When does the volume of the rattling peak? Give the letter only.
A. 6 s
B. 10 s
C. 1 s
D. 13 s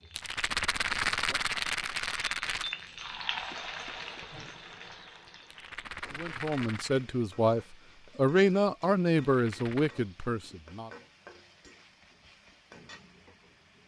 C.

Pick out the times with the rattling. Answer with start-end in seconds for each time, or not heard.
0.1-2.7, 5.5-7.0, 9.2-9.9.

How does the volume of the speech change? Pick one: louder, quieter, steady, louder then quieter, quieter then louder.
louder then quieter.